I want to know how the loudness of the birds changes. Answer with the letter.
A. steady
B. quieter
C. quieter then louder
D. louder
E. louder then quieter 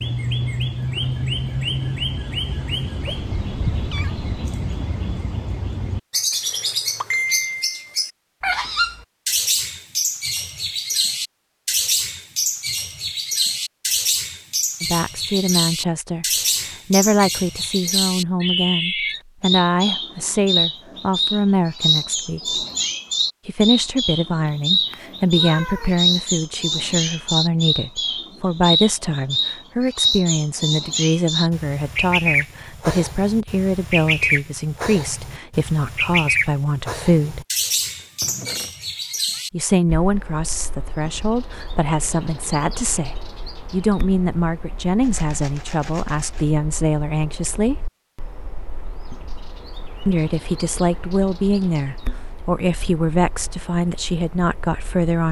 B.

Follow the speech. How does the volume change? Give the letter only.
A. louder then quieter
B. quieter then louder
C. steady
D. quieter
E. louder
C.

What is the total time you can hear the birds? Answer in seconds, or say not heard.
55 s.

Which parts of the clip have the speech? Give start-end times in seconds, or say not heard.
14.8-22.6, 23.4-37.5, 39.5-47.8, 50.0-55.2.